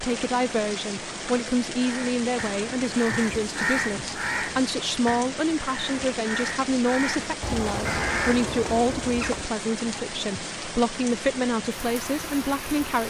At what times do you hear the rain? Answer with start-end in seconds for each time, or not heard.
0.0-13.0.